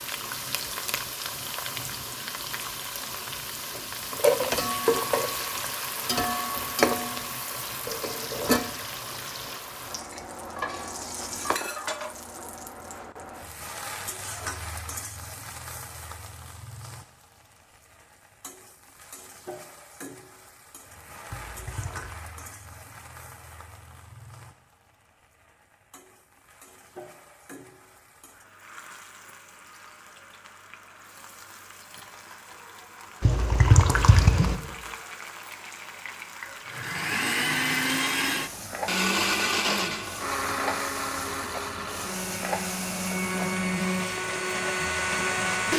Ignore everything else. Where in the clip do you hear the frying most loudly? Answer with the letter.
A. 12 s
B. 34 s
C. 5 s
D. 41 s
C.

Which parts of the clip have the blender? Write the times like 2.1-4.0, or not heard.
36.6-45.7.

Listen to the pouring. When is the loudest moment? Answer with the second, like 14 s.
34 s.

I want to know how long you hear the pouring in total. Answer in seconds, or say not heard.
4 s.